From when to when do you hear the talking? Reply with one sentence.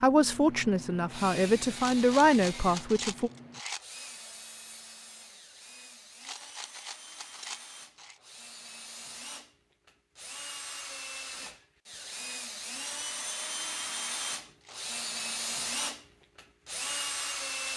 The talking can be heard from 0.0 to 3.3 s.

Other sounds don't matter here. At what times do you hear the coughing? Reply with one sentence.
You can't hear the coughing here.